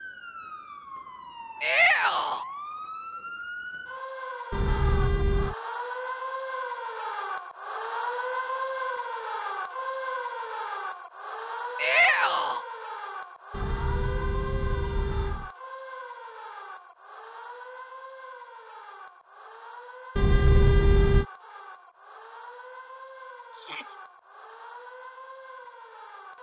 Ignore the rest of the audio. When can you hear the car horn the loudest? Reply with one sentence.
The volume of the car horn peaks at 21 seconds.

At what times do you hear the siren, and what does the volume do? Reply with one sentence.
You can hear the siren from 0.0 to 26.3 s, getting louder then quieter.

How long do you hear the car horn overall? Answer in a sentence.
You can hear the car horn for 4 seconds altogether.